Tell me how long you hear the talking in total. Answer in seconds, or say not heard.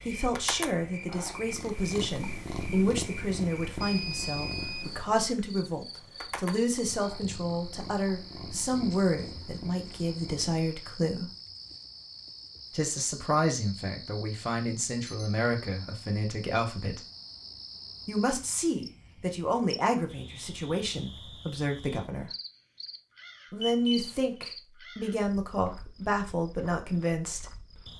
24 s.